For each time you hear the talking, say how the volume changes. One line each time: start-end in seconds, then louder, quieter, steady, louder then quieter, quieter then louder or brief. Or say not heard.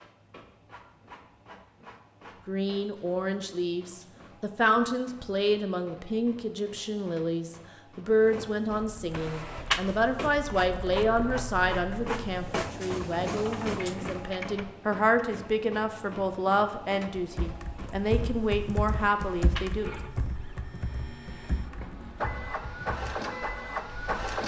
2.5-19.9 steady.